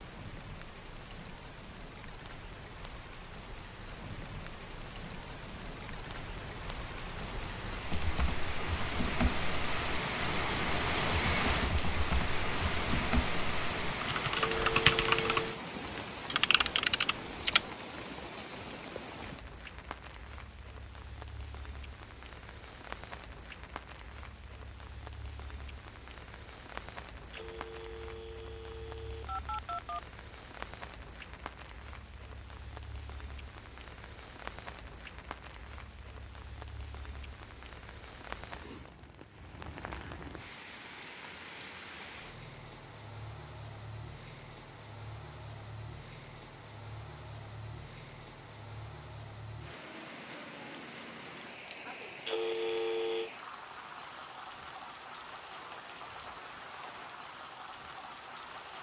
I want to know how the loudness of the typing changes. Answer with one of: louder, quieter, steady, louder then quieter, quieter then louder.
louder.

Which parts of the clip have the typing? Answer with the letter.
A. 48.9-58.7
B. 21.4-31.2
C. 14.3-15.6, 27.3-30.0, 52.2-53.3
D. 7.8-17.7
D.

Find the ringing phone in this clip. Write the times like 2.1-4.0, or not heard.
14.3-15.6, 27.3-30.0, 52.2-53.3.